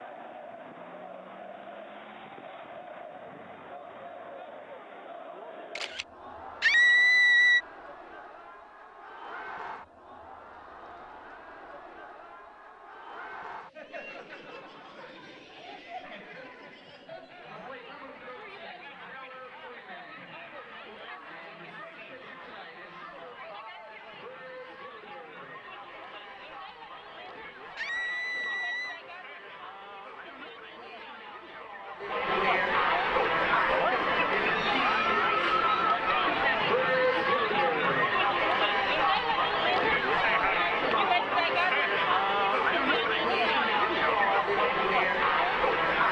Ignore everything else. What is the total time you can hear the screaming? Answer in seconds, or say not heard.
2 s.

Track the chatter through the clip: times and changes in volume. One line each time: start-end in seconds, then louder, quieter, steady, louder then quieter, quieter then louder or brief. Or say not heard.
0.0-46.0 louder.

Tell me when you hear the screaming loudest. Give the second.
7 s.